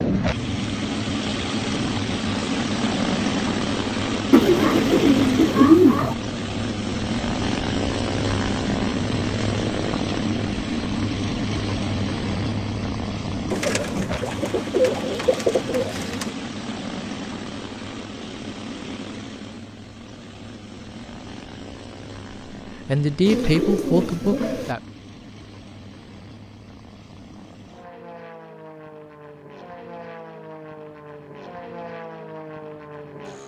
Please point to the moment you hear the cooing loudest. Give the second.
6 s.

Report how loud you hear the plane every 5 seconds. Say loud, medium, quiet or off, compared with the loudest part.
loud, loud, loud, medium, quiet, quiet, quiet.